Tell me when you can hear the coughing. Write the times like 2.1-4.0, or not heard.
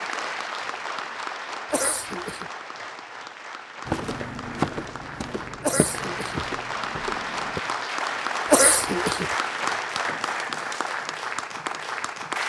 1.7-2.5, 5.6-6.4, 8.5-9.3.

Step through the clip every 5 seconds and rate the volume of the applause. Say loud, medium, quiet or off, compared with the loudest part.
medium, loud, loud.